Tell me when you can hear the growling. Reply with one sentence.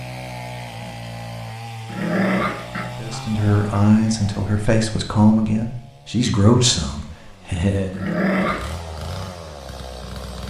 You can hear the growling from 1.9 to 2.9 s and from 7.9 to 8.7 s.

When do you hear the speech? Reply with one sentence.
The speech can be heard from 3.0 to 8.1 s.